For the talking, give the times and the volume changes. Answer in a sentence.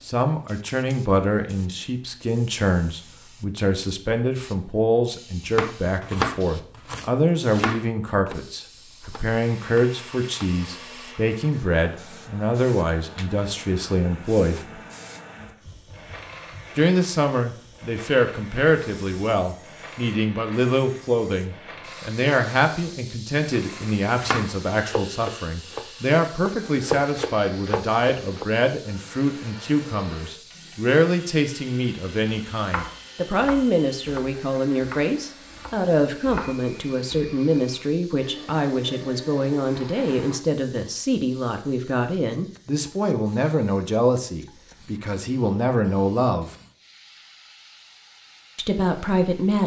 The talking can be heard from 0.0 to 14.8 s, at a steady volume; from 16.8 to 46.5 s, at a steady volume; and briefly from 48.5 to 49.6 s.